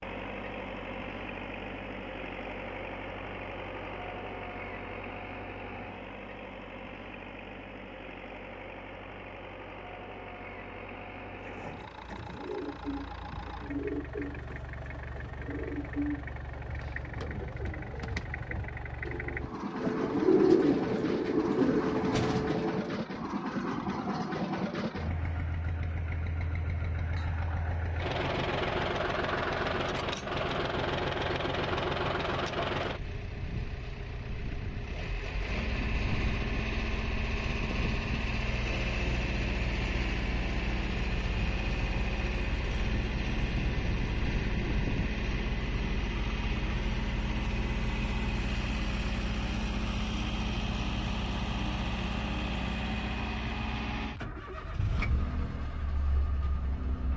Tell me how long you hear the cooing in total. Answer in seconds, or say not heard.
12 s.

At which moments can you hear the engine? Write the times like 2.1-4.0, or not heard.
0.0-57.1.